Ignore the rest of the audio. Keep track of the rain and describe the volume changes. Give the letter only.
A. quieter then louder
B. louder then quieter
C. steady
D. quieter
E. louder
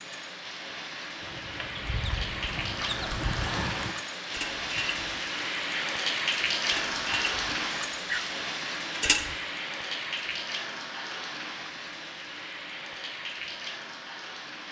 B.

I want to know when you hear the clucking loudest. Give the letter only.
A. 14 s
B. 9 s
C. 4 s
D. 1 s
B.